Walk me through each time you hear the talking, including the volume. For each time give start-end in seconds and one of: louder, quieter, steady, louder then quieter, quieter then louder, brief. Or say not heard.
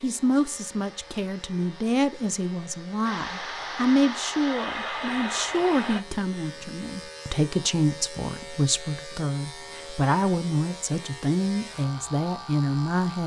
0.0-13.2 steady.